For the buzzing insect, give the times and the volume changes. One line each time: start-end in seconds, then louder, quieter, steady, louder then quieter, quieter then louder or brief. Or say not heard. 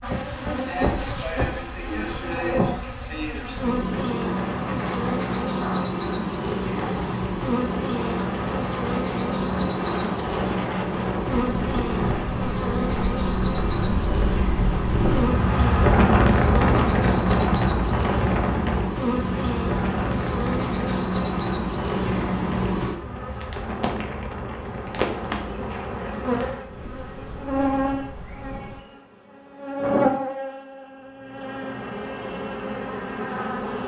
0.0-33.8 steady.